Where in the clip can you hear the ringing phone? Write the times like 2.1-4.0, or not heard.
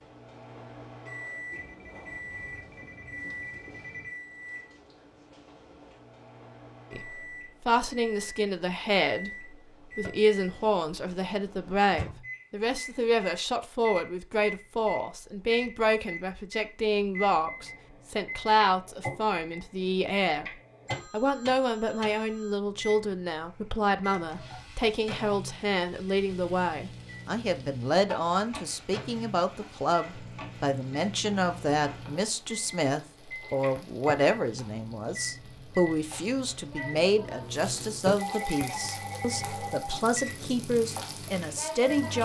1.5-4.2, 20.9-22.6, 38.1-40.0.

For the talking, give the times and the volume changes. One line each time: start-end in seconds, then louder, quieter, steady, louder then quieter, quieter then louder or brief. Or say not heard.
6.9-20.4 steady
21.1-42.1 steady.